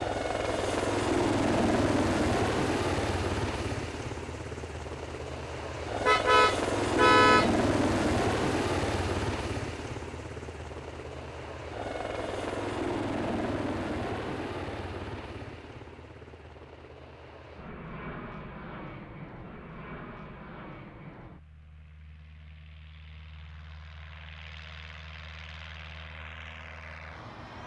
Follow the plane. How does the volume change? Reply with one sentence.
The volume of the plane goes down.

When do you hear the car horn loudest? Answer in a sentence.
The loudest moment of the car horn is at 7 seconds.